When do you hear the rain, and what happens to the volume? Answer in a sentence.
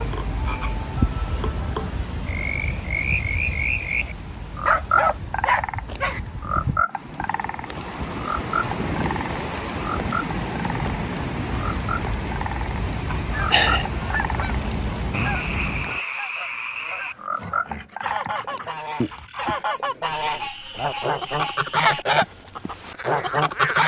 The rain can be heard from 0.0 to 16.1 s, getting quieter then louder.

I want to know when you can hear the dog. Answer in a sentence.
You can hear the dog from 4.7 to 6.2 s and from 17.3 to 19.6 s.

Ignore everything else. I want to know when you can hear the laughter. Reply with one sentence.
You can hear the laughter from 13.1 to 13.9 s.